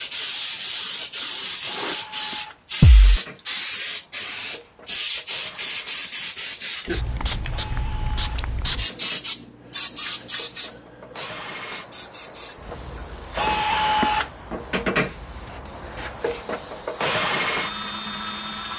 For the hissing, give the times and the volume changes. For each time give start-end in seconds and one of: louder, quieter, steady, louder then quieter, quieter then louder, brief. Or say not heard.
0.0-18.7 quieter.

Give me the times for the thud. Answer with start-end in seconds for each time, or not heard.
2.8-3.2.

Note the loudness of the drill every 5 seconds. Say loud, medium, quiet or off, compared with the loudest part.
quiet, quiet, loud, loud.